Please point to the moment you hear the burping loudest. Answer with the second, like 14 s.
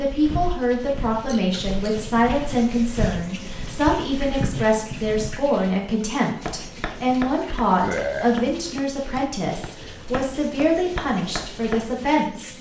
8 s.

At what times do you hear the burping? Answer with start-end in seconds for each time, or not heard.
1.2-2.1, 7.8-8.3.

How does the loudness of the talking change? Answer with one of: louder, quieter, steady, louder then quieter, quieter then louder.
steady.